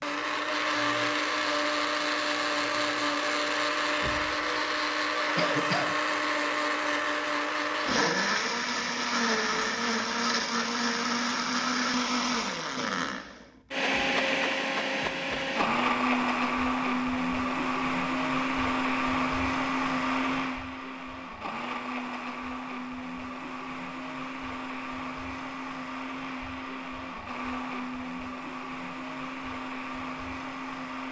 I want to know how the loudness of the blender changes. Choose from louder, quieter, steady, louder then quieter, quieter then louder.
quieter.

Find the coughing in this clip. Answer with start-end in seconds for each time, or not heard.
5.3-6.0.